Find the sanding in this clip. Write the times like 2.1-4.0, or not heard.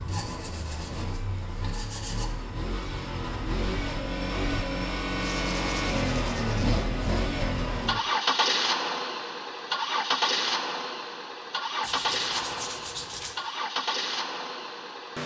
0.1-2.4, 5.2-7.2, 11.8-13.3.